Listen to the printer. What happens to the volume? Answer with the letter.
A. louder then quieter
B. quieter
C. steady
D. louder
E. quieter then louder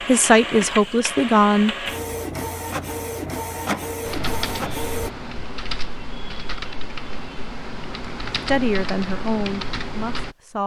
C.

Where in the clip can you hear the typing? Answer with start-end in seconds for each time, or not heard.
4.0-10.3.